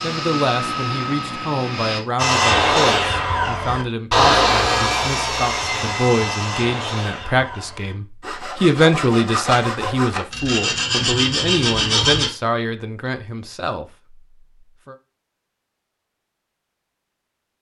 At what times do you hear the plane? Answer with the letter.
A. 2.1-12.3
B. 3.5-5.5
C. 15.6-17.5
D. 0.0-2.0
D.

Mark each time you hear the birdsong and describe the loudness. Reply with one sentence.
You can't hear the birdsong here.